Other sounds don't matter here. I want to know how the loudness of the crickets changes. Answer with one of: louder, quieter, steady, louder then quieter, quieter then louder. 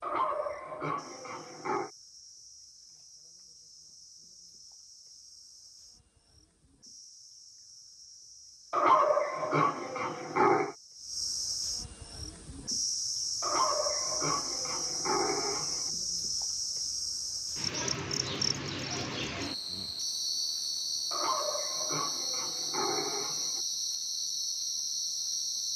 louder.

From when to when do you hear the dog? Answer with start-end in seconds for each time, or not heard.
0.0-1.9, 8.7-10.8, 13.4-15.9, 21.1-23.6.